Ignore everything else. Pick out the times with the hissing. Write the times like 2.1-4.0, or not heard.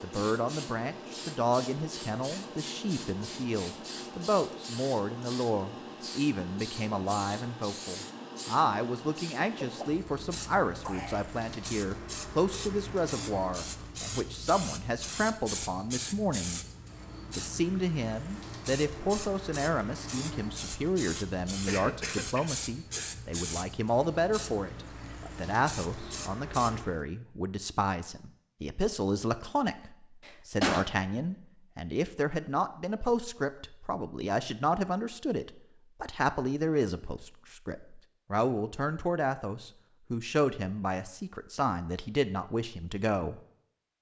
0.0-27.0.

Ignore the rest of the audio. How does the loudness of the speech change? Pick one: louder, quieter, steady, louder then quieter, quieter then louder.
steady.